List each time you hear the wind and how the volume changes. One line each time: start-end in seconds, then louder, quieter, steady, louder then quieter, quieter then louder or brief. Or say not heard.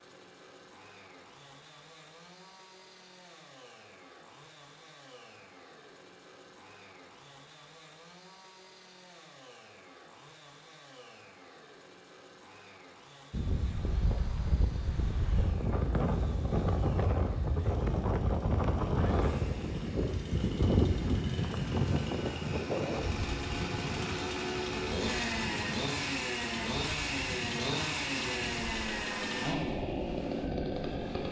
13.3-31.2 quieter.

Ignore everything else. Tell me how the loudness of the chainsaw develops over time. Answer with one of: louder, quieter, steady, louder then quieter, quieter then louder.
louder.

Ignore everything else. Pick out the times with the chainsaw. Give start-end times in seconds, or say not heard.
0.0-31.2.